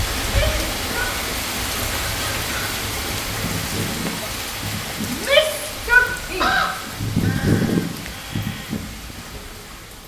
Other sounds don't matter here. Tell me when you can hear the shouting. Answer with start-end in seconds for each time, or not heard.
0.2-1.1, 5.1-6.6.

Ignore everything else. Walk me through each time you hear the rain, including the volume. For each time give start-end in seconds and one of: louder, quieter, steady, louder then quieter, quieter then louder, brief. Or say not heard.
0.0-10.0 quieter.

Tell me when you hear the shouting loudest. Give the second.
6 s.